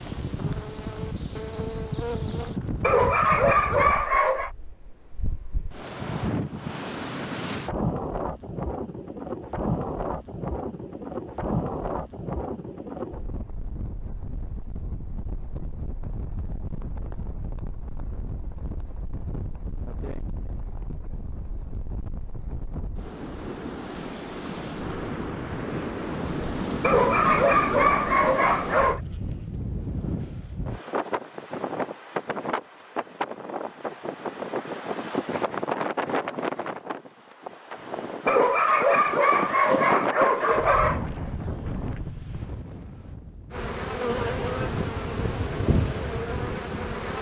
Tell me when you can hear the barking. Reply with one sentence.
You can hear the barking from 2.8 to 4.5 s, from 26.8 to 29.0 s and from 38.2 to 41.0 s.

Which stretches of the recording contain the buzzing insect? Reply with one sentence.
You can hear the buzzing insect from 0.0 to 2.6 s and from 43.5 to 47.1 s.